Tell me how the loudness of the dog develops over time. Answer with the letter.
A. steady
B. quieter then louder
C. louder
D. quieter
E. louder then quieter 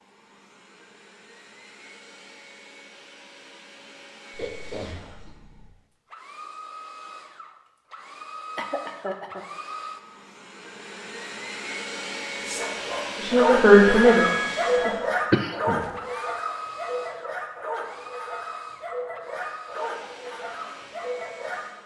D.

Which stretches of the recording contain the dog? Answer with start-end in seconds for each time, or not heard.
12.4-21.6.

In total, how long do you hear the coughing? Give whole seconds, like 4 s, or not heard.
3 s.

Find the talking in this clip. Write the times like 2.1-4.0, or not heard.
13.2-14.9.